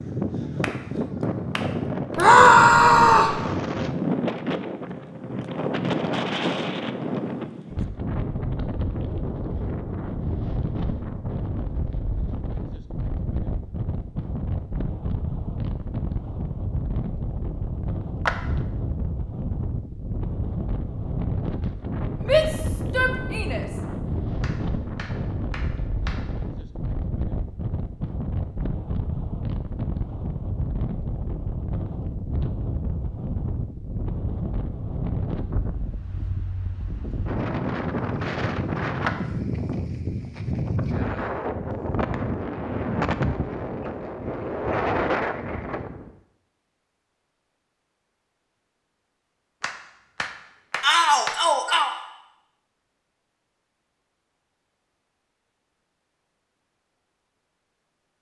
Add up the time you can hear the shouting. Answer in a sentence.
The shouting can be heard for 4 seconds in total.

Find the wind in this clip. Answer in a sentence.
You can hear the wind from 0.0 to 46.1 s.